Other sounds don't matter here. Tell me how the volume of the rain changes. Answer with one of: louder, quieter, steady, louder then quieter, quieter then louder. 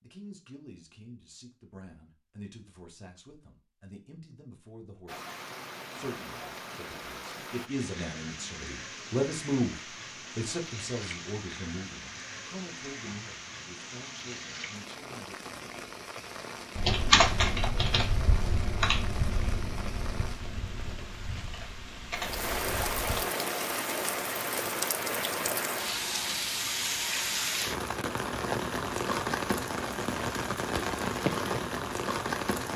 louder.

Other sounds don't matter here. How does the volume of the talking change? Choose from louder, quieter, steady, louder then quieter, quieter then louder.
louder then quieter.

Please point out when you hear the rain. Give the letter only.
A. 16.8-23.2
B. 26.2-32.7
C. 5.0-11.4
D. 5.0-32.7
D.